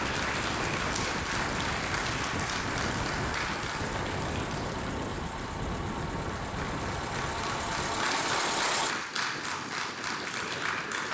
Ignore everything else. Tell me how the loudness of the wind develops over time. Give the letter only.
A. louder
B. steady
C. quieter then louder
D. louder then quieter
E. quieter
E.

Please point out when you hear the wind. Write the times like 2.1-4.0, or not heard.
0.0-11.0.